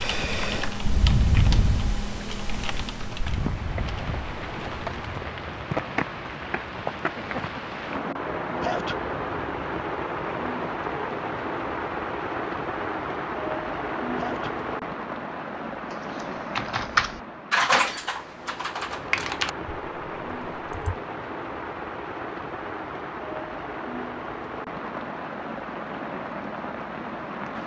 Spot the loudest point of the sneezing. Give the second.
9 s.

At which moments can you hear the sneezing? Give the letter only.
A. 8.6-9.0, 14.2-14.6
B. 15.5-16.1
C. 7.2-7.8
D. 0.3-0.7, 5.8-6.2
A.